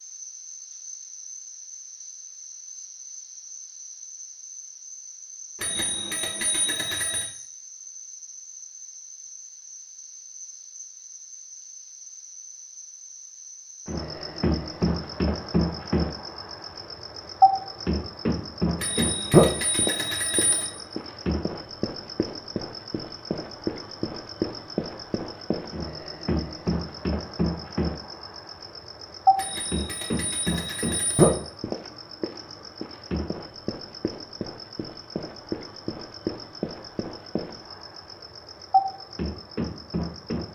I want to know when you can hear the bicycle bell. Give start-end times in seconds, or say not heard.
5.6-7.3, 18.8-20.7, 29.4-31.4.